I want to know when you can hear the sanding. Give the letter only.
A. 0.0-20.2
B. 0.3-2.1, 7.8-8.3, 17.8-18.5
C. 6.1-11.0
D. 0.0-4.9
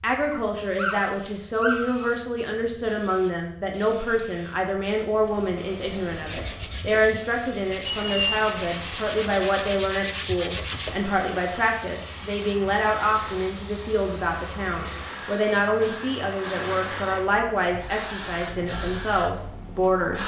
C.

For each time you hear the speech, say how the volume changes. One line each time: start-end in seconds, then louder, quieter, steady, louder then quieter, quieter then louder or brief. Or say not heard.
0.0-20.2 steady.